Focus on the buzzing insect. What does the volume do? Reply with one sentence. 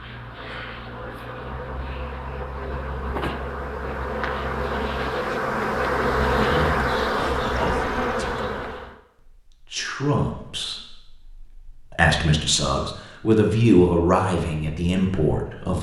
The volume of the buzzing insect goes up.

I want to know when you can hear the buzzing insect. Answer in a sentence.
The buzzing insect can be heard from 0.0 to 8.9 s.